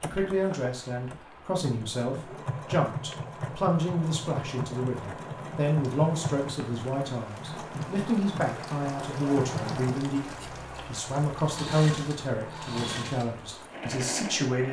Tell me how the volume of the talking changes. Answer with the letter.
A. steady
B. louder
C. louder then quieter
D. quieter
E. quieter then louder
A.